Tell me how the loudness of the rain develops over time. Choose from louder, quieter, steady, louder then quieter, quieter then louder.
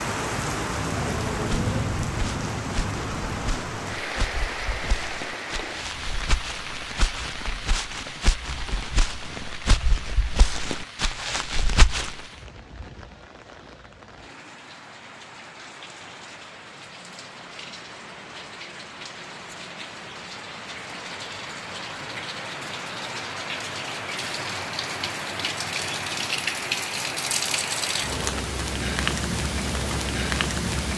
quieter then louder.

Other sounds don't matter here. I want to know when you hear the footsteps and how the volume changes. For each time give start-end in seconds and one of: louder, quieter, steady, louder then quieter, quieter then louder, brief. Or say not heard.
1.4-12.2 louder.